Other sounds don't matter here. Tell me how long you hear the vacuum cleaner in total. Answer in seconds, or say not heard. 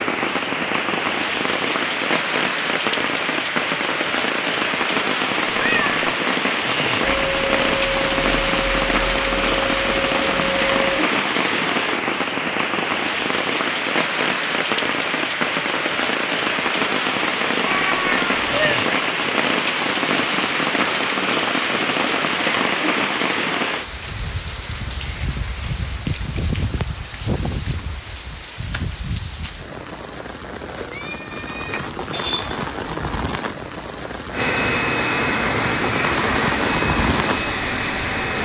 8 s.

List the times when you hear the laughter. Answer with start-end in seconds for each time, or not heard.
not heard.